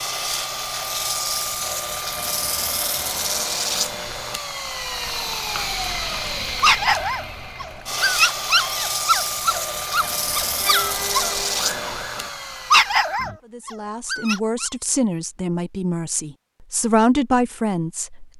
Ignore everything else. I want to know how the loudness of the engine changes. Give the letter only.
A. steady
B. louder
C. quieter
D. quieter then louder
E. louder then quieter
A.